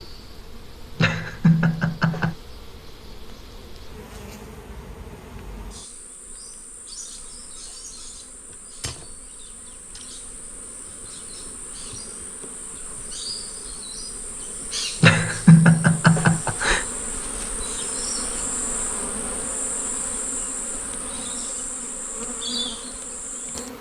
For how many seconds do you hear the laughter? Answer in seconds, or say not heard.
3 s.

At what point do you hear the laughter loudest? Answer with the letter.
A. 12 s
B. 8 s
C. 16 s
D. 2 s
C.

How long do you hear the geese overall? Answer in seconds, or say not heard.
not heard.